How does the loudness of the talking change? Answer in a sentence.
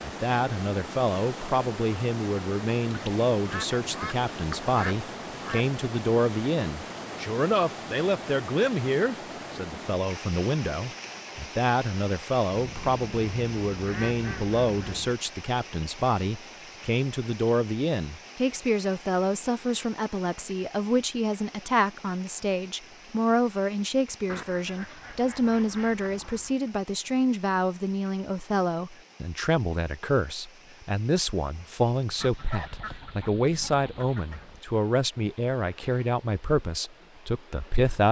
The volume of the talking stays about the same.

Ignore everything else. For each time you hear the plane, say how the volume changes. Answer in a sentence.
You can't hear the plane here.